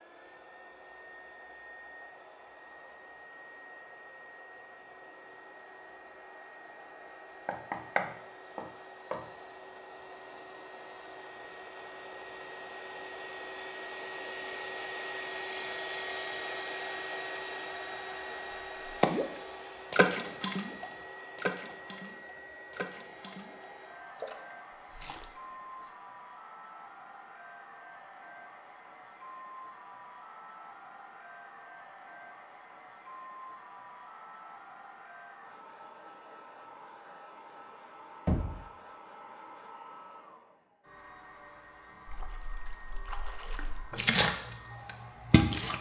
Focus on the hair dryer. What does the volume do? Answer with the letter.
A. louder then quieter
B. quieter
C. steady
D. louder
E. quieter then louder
A.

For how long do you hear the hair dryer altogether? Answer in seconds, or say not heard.
46 s.